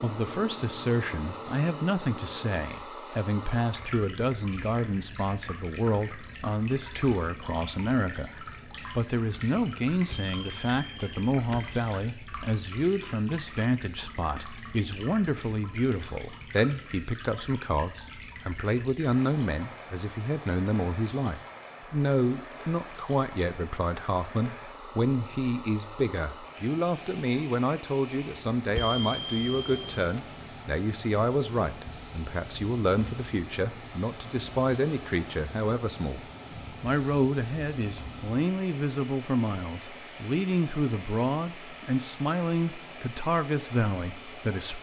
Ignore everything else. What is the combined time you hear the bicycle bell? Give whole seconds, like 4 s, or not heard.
3 s.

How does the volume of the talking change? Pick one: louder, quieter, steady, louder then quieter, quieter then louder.
steady.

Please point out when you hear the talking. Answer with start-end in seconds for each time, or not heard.
0.0-44.7.